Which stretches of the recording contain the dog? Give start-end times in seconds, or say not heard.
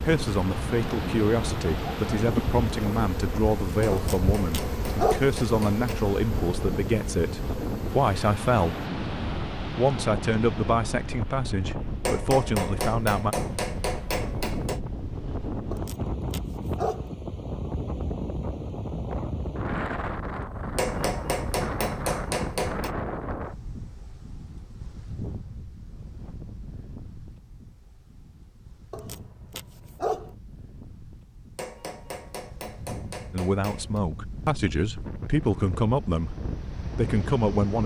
3.9-5.3, 15.7-17.1, 28.9-30.4.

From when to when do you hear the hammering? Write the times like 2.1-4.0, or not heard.
3.8-6.0, 12.1-14.8, 20.8-22.9, 31.6-34.0.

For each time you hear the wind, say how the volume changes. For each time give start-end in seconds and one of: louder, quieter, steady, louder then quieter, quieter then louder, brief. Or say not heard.
0.0-37.8 quieter.